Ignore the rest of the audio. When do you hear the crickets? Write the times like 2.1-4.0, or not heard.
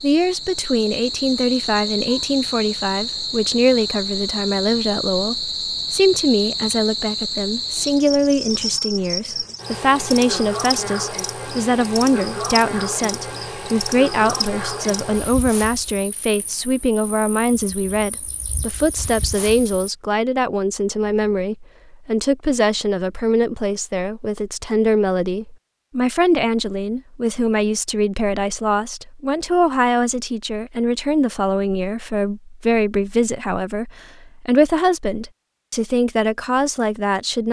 0.0-19.9.